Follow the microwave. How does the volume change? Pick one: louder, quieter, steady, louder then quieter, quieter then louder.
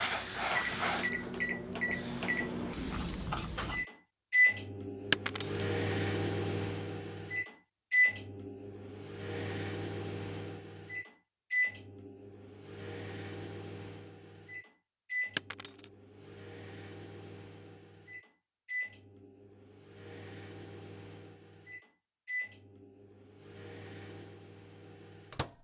quieter.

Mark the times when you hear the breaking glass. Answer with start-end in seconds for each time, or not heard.
5.1-5.7, 15.3-15.9.